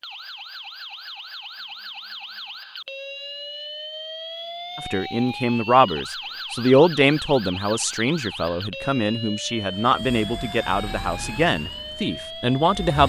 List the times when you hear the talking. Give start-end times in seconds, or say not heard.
4.8-13.0.